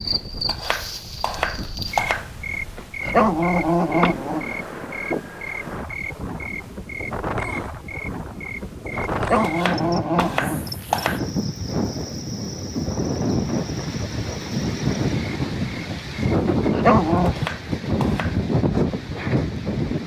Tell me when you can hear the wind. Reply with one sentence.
The wind can be heard from 0.0 to 20.0 s.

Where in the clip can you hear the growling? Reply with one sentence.
You can hear the growling from 2.8 to 4.5 s, from 8.9 to 10.7 s and from 16.7 to 17.4 s.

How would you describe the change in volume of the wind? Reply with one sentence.
The loudness of the wind goes up.